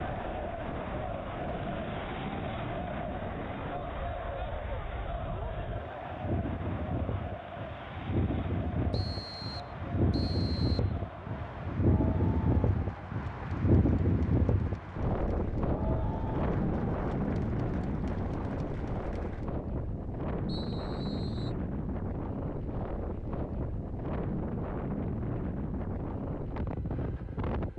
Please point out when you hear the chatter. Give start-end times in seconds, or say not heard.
0.0-19.5.